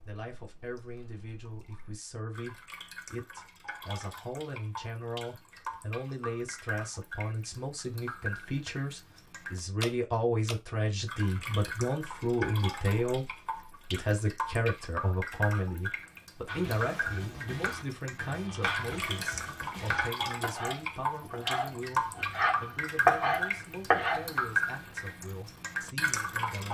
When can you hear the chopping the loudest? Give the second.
23 s.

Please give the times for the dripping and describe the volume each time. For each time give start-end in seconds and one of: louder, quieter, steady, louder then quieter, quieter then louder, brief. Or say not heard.
0.0-26.6 louder.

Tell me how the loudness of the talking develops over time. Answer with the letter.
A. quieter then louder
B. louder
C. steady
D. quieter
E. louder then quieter
E.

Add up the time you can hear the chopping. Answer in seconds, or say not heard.
8 s.